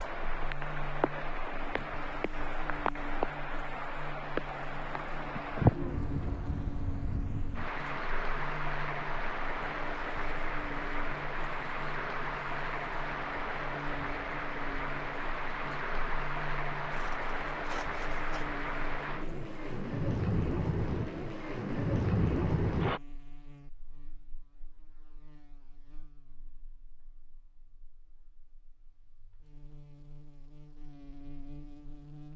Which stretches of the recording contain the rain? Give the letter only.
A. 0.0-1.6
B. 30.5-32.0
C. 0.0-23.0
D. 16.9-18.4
C.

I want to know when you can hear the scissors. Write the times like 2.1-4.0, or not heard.
16.9-18.4.